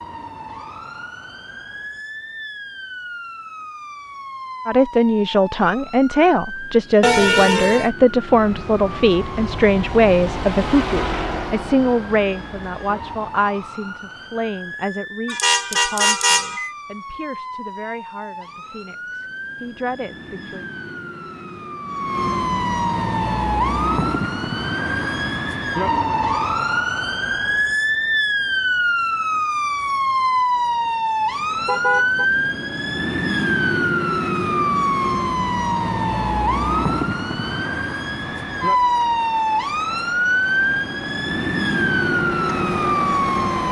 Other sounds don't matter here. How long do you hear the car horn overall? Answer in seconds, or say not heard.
3 s.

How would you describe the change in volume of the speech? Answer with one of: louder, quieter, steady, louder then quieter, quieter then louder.
quieter.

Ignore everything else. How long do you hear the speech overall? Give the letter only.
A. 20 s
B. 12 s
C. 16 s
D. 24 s
C.